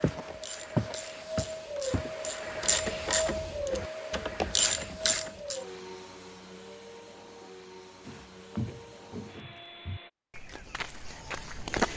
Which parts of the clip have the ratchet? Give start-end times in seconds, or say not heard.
0.1-5.6.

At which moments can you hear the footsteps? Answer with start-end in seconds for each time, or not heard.
0.0-2.1, 8.1-11.9.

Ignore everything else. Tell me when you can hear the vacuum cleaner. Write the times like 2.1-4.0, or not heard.
0.0-10.1.